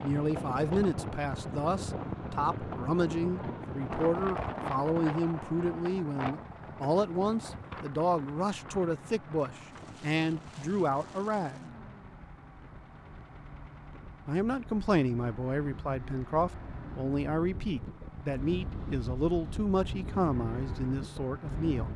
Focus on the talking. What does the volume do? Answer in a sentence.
The volume of the talking stays about the same.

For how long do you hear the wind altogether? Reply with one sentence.
The wind can be heard for 22 seconds in total.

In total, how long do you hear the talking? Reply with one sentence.
You can hear the talking for 19 seconds altogether.